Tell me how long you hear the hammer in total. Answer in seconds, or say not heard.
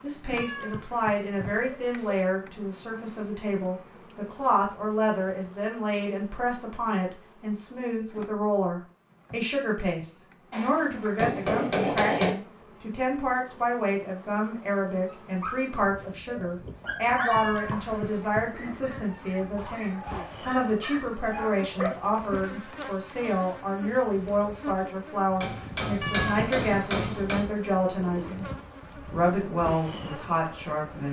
4 s.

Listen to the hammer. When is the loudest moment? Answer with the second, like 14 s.
12 s.